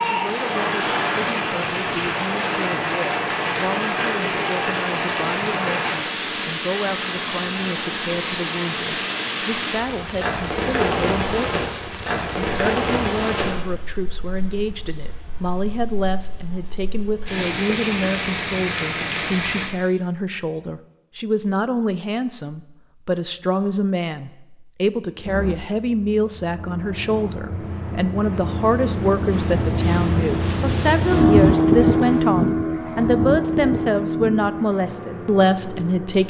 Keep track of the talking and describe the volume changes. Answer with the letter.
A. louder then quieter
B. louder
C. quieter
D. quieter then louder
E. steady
B.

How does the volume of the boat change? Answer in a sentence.
The loudness of the boat goes up, then down.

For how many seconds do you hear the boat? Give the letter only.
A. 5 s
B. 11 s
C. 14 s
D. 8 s
B.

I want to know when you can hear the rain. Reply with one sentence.
You can hear the rain from 0.0 to 19.7 s.